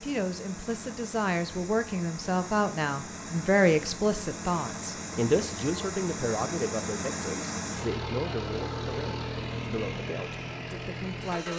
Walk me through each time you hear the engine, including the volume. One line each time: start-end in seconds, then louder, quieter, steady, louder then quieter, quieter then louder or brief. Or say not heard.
0.0-11.5 louder.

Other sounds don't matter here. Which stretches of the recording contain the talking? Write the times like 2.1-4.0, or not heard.
0.0-11.5.